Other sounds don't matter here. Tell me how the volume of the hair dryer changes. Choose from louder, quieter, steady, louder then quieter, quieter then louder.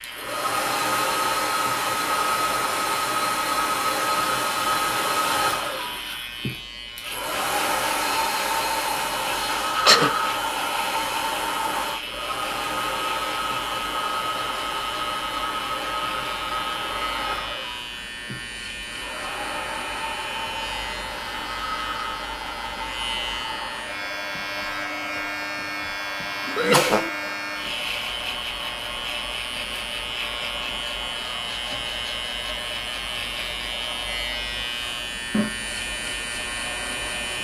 quieter.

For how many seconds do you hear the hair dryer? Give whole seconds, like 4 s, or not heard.
37 s.